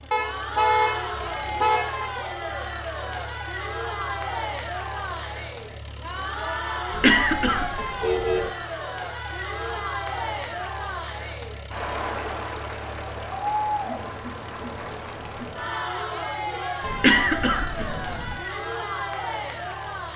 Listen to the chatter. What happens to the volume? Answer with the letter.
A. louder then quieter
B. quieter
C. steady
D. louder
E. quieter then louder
C.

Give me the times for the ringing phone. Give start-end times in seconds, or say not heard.
not heard.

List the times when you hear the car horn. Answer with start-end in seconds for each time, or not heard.
0.1-2.1, 6.9-8.5, 16.8-18.4.